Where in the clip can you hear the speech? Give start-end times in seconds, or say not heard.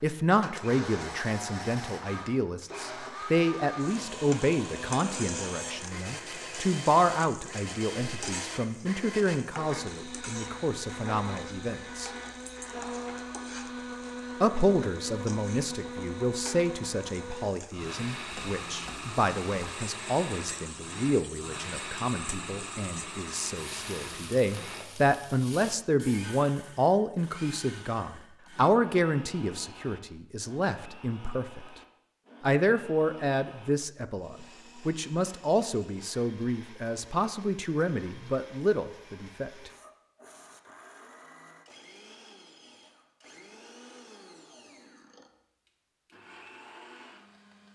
0.0-12.1, 14.4-31.6, 32.4-39.7.